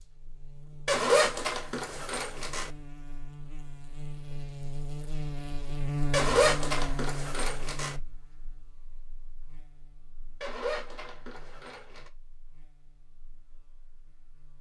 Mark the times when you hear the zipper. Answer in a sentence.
You can hear the zipper from 0.8 to 2.7 s, from 6.1 to 8.0 s and from 10.4 to 12.1 s.